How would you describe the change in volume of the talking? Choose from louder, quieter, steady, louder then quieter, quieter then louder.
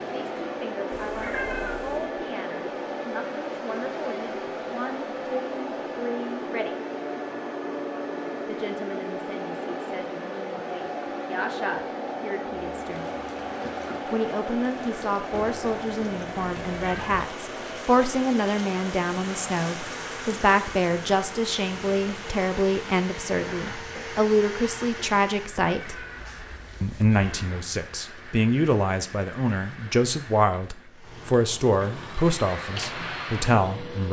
louder.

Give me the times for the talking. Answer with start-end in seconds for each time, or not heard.
0.0-6.8, 8.4-13.1, 14.1-25.9, 26.8-34.0.